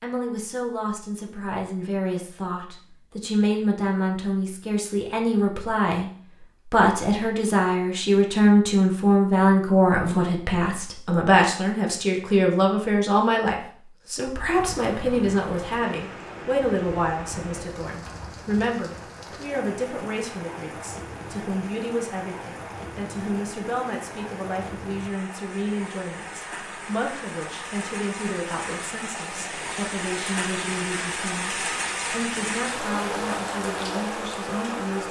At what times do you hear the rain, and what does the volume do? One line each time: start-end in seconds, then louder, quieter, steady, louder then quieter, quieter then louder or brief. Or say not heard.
14.3-35.0 louder.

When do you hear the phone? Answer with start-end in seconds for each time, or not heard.
not heard.